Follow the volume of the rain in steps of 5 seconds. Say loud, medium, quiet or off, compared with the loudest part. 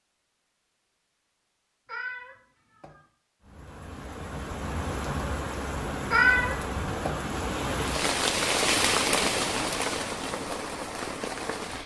medium, loud, medium.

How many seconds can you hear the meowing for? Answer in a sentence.
You can hear the meowing for 2 seconds altogether.